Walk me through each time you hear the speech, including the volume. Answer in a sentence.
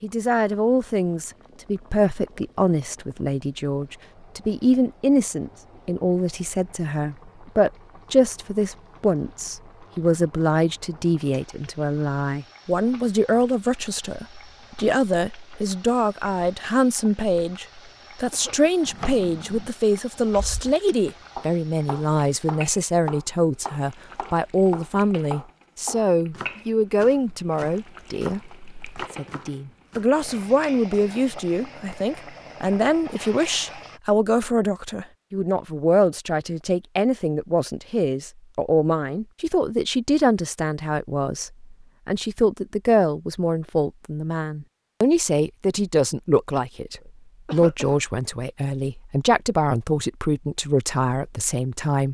You can hear the speech from 0.0 to 52.0 s, at a steady volume.